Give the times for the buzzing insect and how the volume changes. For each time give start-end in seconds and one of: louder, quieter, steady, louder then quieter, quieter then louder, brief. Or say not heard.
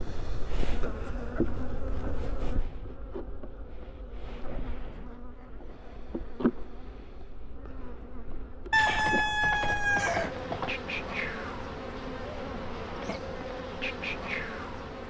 0.0-15.0 quieter then louder.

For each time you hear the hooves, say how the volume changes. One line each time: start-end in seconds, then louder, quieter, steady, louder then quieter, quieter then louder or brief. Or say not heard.
not heard.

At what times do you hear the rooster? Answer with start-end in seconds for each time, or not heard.
8.7-10.8.